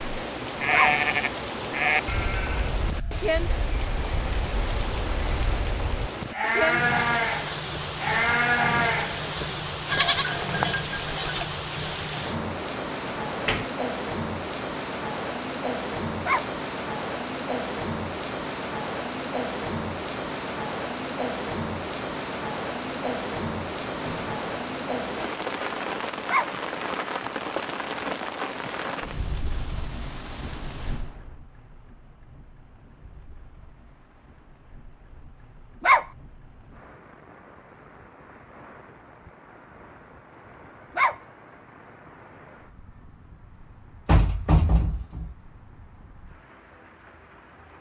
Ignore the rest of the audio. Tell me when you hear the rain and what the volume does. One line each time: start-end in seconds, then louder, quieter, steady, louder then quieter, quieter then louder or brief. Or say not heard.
0.0-47.7 quieter.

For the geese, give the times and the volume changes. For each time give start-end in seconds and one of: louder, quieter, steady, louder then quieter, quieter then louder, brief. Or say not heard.
not heard.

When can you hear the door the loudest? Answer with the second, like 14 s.
45 s.